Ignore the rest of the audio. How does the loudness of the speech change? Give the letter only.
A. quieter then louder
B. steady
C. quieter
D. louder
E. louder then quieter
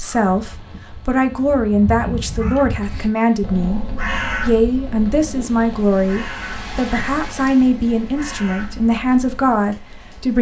B.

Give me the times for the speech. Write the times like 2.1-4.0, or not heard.
0.0-10.3.